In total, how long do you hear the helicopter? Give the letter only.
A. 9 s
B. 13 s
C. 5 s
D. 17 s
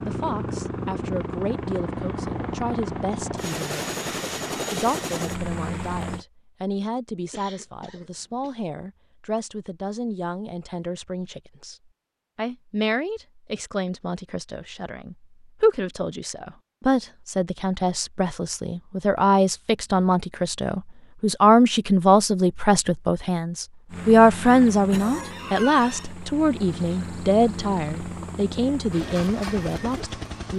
B.